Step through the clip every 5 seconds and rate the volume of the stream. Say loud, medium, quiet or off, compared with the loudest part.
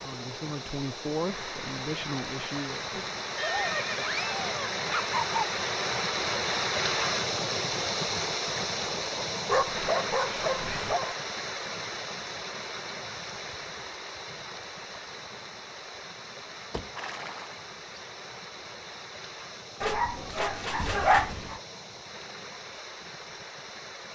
medium, loud, medium, quiet, quiet.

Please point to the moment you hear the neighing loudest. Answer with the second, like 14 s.
4 s.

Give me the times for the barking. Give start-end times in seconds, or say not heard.
3.4-5.4, 9.4-11.2, 19.8-21.6.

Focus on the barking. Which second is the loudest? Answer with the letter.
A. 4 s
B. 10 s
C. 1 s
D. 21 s
D.